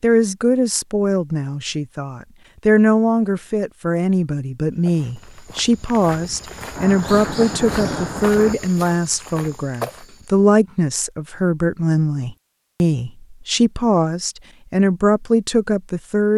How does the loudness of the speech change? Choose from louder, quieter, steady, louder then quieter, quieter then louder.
steady.